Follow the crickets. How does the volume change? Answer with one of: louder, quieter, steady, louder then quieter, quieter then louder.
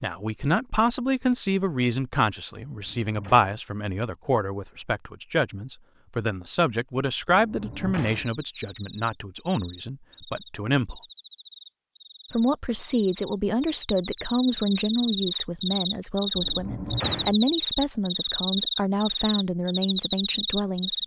louder.